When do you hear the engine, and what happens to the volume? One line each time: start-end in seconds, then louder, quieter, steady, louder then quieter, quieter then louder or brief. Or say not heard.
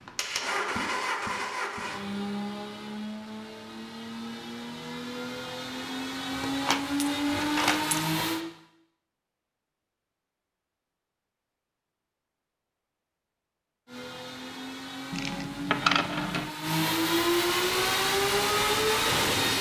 0.0-8.4 quieter then louder
13.8-19.5 louder.